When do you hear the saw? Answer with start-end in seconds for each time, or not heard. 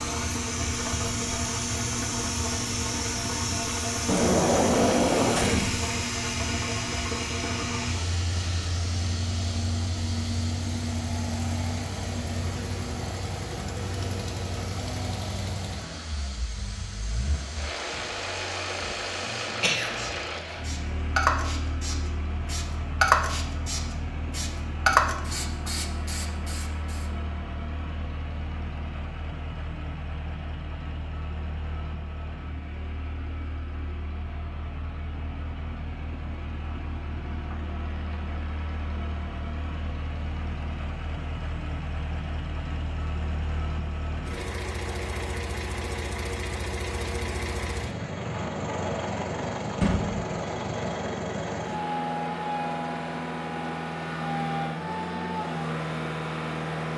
not heard.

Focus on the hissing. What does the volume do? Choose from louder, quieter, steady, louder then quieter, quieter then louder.
quieter then louder.